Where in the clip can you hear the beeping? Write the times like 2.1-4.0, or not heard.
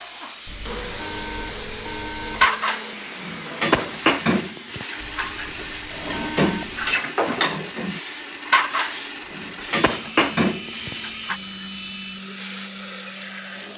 0.5-2.5, 5.0-7.0, 10.3-12.2.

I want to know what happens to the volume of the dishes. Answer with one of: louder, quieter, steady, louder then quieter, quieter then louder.
quieter then louder.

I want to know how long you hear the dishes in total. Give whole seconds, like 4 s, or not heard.
9 s.